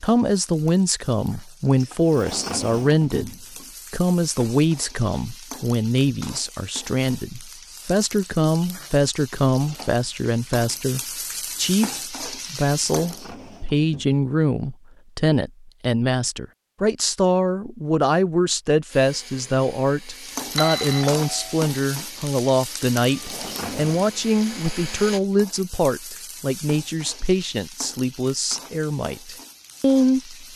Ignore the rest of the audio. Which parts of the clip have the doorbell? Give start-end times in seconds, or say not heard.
20.6-21.6.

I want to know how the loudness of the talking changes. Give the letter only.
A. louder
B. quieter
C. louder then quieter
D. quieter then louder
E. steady
E.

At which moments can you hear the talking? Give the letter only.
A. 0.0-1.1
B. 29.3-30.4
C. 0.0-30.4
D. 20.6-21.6
C.